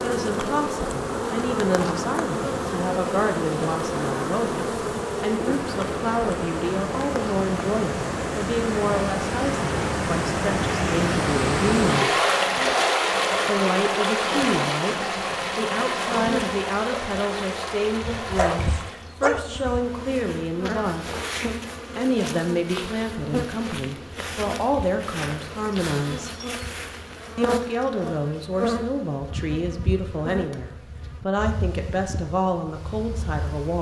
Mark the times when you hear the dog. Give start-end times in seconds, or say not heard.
18.4-19.5.